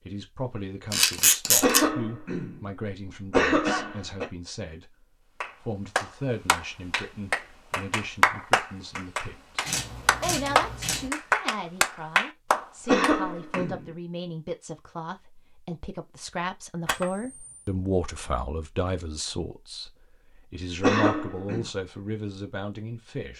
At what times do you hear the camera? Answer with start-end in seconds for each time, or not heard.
0.9-1.8, 9.7-11.1, 16.9-17.6.